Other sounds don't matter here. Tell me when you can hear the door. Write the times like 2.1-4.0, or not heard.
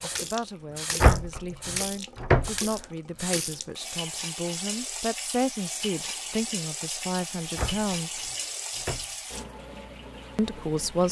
1.0-2.5, 7.5-9.1.